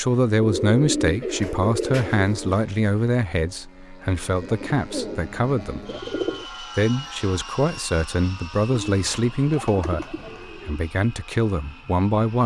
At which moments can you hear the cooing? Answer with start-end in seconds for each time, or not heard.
0.4-2.6, 4.4-6.5, 8.7-10.8.